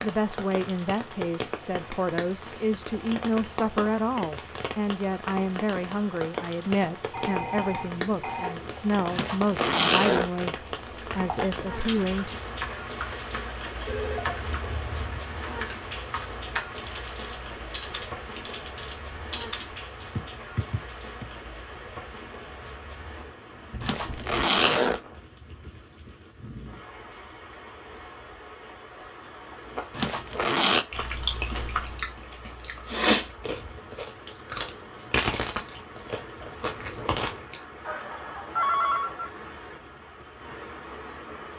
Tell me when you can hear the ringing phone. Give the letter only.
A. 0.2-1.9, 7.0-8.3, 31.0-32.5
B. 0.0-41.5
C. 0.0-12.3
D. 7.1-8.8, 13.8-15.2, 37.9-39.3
D.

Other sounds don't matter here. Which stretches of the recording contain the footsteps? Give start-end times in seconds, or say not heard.
not heard.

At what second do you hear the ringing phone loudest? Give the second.
39 s.